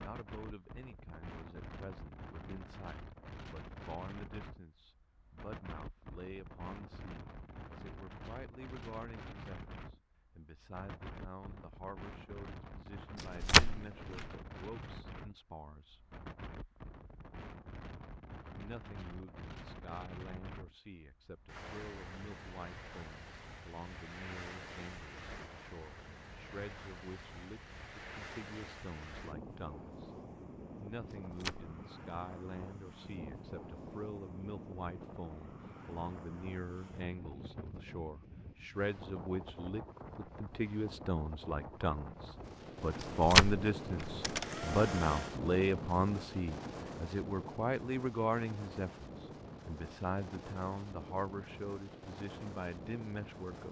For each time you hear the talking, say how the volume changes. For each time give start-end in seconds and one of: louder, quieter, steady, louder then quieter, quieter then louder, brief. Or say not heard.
0.1-16.1 steady
18.6-30.1 steady
30.8-53.6 louder then quieter.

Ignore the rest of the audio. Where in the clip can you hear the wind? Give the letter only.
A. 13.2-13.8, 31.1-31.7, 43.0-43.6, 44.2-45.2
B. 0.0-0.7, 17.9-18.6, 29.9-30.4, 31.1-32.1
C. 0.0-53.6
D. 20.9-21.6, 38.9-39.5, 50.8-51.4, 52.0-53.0
C.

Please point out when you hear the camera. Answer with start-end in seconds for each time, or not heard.
13.2-13.8, 31.1-31.7, 43.0-43.6, 44.2-45.2.